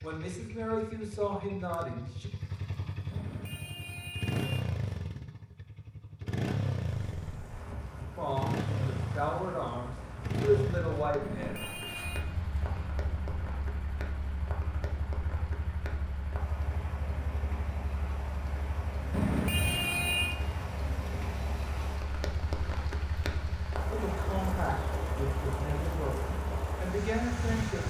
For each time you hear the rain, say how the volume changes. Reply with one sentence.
The rain can be heard from 6.8 to 27.8 s, getting louder.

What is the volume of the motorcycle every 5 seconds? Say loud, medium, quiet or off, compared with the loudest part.
loud, loud, loud, medium, medium, medium.